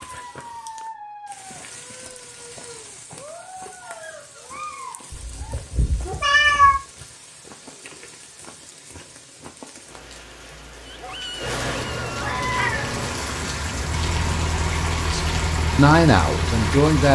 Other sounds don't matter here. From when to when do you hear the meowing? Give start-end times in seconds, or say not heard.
5.1-6.8, 11.4-13.2.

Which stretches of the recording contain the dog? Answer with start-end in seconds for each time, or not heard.
0.0-6.3, 10.8-12.8.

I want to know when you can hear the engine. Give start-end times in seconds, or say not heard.
13.8-17.1.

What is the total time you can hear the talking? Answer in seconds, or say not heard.
2 s.